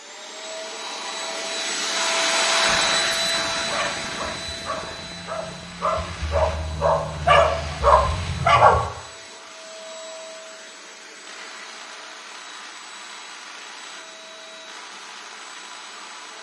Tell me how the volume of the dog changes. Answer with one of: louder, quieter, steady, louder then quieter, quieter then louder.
louder.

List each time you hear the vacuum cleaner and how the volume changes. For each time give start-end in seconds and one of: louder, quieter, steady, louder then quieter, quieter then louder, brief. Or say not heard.
0.0-16.3 quieter.